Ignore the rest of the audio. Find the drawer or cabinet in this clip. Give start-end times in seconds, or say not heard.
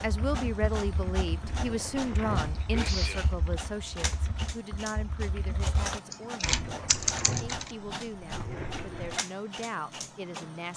1.4-2.6, 6.5-9.2.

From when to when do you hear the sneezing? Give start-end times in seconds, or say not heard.
2.0-3.4.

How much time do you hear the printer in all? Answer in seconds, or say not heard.
11 s.